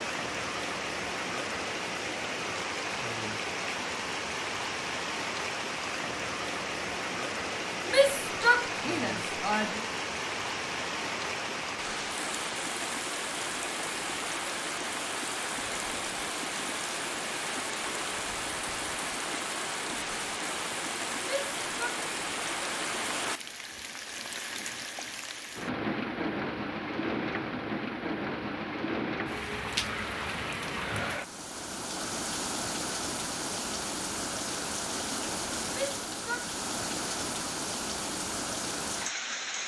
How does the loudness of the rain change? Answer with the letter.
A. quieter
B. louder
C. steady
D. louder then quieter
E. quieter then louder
C.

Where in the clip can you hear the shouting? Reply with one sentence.
The shouting can be heard from 7.8 to 9.8 s, from 21.2 to 21.9 s and from 35.7 to 36.5 s.